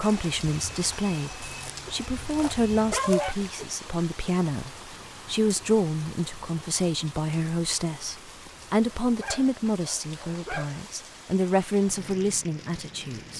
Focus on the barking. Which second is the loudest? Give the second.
3 s.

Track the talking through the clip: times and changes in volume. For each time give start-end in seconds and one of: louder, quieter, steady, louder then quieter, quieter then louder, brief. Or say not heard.
0.0-13.3 steady.